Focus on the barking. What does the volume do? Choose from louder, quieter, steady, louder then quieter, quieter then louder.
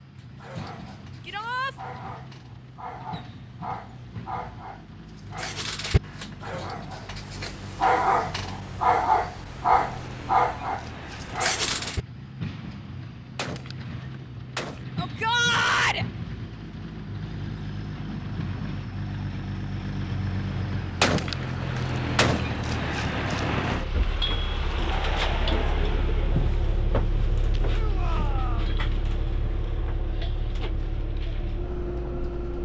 louder.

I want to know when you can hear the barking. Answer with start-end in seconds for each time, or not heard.
0.1-12.1.